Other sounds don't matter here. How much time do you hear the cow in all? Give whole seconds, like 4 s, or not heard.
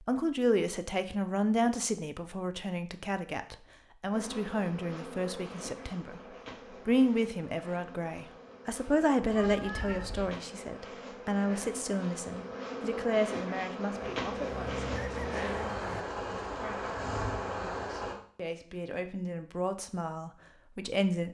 not heard.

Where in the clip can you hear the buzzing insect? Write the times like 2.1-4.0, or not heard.
4.1-18.1.